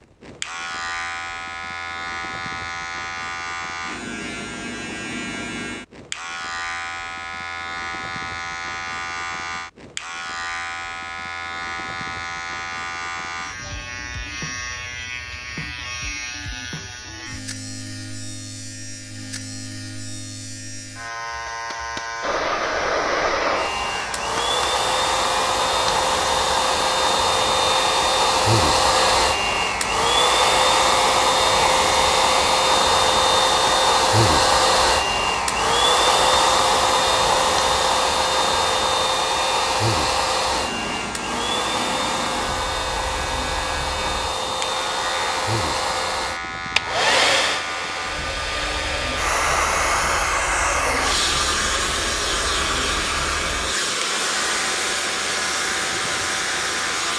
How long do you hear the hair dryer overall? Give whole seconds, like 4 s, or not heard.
35 s.